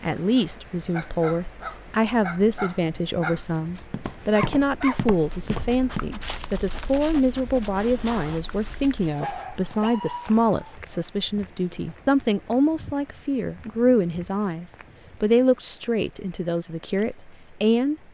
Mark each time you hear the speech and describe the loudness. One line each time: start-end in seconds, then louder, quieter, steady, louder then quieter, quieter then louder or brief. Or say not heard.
0.0-17.9 steady.